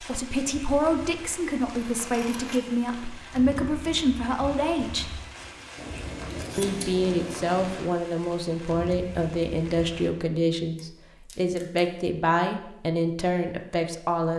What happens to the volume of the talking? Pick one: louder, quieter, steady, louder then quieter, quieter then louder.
steady.